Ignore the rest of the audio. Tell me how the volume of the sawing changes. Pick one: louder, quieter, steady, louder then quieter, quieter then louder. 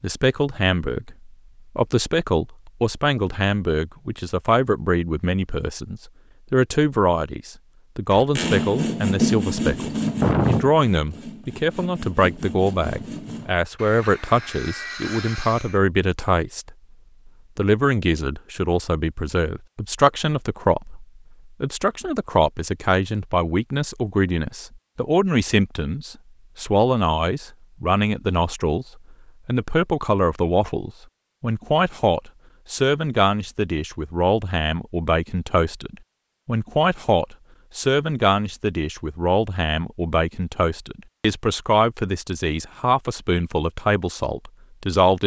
quieter.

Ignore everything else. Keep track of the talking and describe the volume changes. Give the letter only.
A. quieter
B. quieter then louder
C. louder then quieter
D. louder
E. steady
E.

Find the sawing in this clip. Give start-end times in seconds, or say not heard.
8.1-15.8.